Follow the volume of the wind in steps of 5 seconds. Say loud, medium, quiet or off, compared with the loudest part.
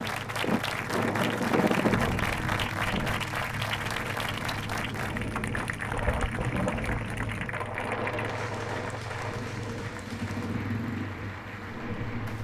loud, loud, medium.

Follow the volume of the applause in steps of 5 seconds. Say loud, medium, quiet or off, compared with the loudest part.
loud, medium, medium.